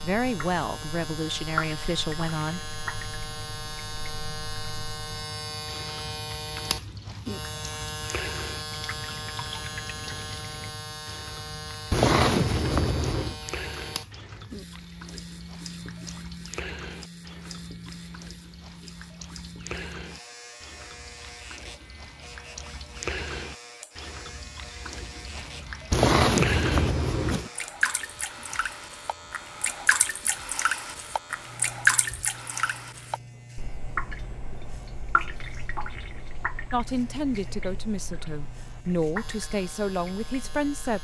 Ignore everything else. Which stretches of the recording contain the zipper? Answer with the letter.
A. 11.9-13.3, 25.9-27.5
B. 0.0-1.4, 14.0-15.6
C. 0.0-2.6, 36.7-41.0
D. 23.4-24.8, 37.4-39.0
A.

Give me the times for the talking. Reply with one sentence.
The talking can be heard from 0.0 to 2.6 s and from 36.7 to 41.0 s.